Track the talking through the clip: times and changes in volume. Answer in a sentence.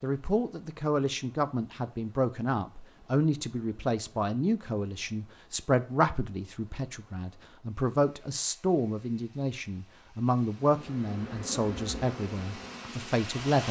You can hear the talking from 0.0 to 13.6 s, at a steady volume.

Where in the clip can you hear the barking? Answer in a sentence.
The barking can't be heard in this clip.